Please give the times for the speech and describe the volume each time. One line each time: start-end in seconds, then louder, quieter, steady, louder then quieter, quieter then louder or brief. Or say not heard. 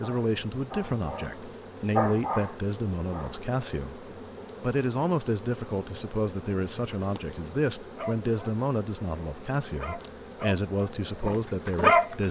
0.0-12.2 steady.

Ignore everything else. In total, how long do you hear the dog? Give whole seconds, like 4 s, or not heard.
8 s.